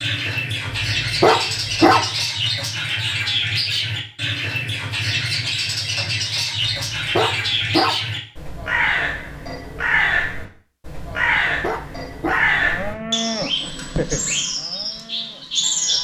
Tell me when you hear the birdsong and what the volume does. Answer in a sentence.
You can hear the birdsong from 0.0 to 15.9 s, at a steady volume.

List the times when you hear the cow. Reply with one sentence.
The cow can be heard from 12.4 to 15.9 s.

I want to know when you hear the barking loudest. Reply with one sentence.
The loudest moment of the barking is at 2 seconds.